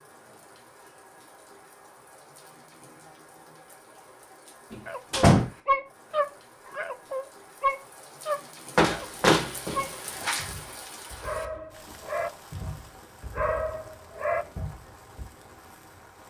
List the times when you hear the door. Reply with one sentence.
You can hear the door from 4.7 to 5.5 s and from 8.8 to 10.5 s.